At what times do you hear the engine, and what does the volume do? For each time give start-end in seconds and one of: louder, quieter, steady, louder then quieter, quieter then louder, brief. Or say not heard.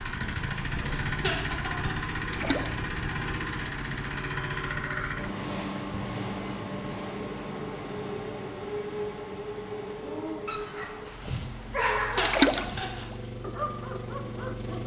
0.0-14.8 quieter.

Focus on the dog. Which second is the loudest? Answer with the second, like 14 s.
12 s.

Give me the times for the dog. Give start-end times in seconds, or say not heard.
10.0-14.8.